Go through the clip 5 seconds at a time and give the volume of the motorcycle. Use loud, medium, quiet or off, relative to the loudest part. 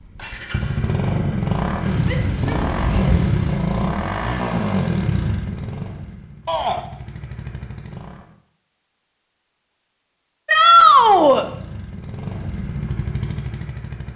loud, medium, medium.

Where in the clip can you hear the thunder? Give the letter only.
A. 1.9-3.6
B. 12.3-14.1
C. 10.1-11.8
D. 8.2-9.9
A.